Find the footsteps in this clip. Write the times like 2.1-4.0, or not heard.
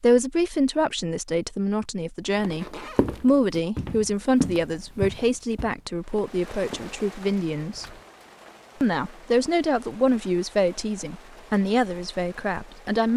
2.4-8.0.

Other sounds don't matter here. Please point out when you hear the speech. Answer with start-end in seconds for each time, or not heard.
0.0-7.8, 8.8-13.1.